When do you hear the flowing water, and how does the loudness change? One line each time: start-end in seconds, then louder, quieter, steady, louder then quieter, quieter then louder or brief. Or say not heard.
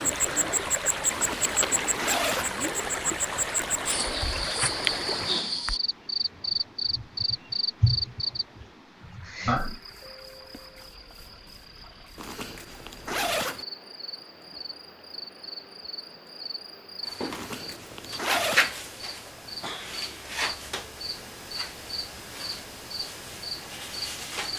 0.0-24.5 quieter.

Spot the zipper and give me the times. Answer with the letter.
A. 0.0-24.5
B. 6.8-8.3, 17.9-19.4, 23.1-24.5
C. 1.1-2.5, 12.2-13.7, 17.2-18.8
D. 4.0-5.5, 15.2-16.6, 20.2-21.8
C.